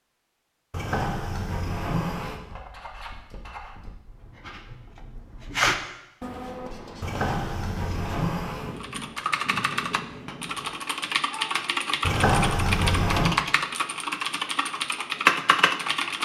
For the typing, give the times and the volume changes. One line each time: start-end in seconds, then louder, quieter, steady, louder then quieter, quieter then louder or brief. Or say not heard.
8.8-16.1 louder.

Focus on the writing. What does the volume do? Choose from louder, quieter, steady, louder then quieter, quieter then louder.
louder then quieter.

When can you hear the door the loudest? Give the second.
12 s.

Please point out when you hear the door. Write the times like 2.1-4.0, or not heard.
0.7-2.4, 7.0-8.8, 12.0-13.3.